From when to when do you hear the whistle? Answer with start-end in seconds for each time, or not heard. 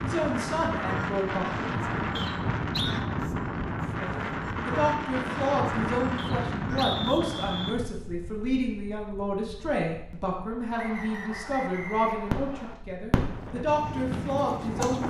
2.1-3.0, 6.2-7.8, 10.8-12.8.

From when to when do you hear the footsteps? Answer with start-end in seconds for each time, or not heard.
not heard.